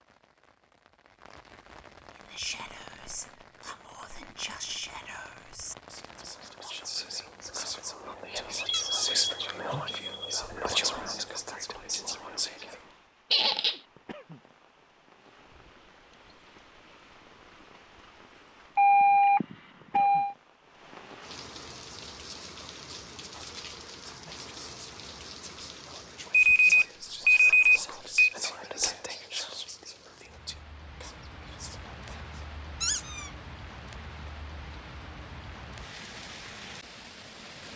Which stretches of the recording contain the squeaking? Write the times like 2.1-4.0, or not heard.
8.6-9.1, 13.3-13.8, 32.8-33.3.